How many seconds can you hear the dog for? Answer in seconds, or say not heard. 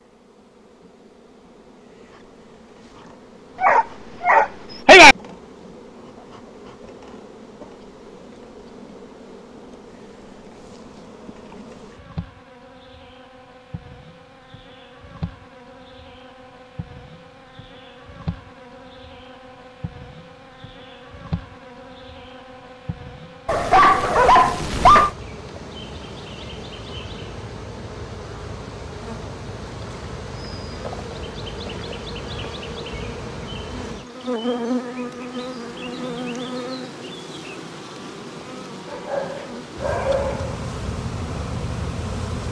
5 s.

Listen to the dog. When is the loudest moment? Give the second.
5 s.